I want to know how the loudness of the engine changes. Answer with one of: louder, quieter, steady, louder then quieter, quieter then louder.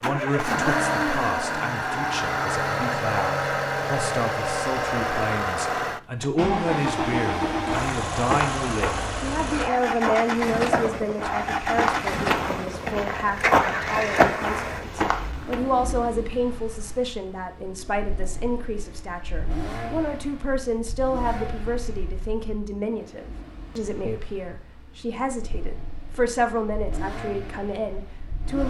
quieter.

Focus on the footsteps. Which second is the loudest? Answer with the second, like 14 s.
14 s.